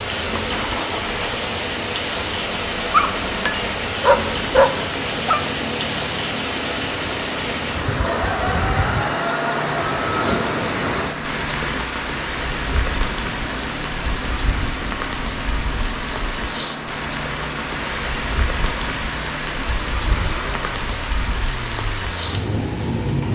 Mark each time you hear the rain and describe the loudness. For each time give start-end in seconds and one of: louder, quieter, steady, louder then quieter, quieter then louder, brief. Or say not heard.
0.0-23.2 steady.